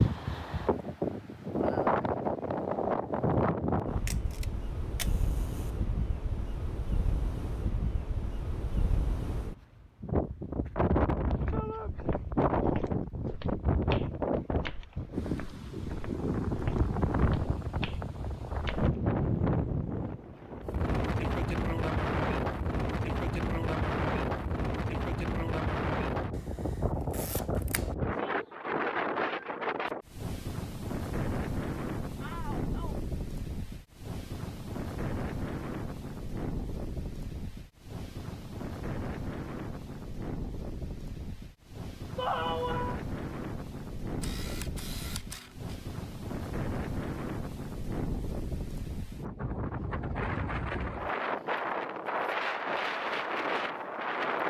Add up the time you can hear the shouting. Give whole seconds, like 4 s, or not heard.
2 s.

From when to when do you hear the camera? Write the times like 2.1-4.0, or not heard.
4.0-5.7, 26.3-27.9, 44.1-45.8.